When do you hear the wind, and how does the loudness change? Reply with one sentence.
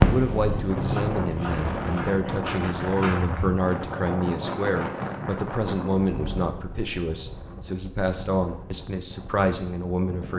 The wind can be heard from 0.1 to 10.3 s, getting quieter.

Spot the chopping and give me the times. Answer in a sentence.
The chopping can be heard from 0.0 to 3.6 s.